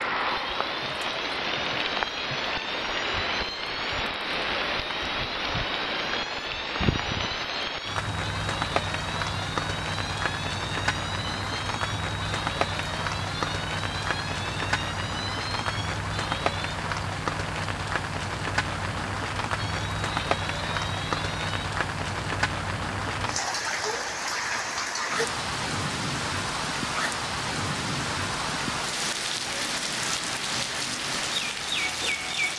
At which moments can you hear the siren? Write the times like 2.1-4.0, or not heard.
0.1-16.8, 19.6-21.6.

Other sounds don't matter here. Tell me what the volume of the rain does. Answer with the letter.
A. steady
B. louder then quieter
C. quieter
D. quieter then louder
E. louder
A.